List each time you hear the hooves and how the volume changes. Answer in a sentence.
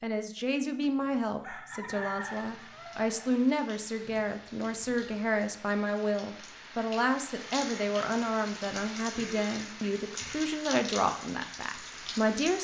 The hooves can't be heard in this clip.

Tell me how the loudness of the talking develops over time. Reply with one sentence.
The volume of the talking stays about the same.